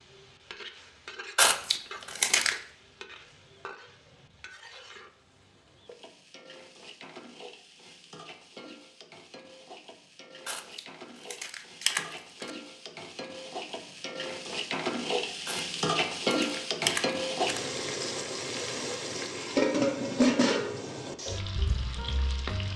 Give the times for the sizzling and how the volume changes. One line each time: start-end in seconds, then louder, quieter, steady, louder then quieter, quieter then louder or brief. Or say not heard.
0.0-22.7 louder.